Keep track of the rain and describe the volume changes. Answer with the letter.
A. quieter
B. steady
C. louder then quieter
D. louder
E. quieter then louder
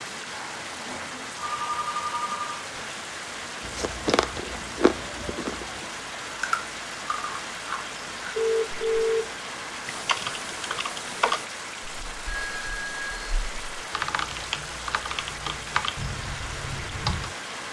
B.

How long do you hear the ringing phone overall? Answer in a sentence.
The ringing phone can be heard for 4 seconds in total.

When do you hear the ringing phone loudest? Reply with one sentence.
The loudest moment of the ringing phone is at 9 seconds.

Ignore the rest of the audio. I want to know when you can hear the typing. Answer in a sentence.
The typing can be heard from 9.8 to 17.4 s.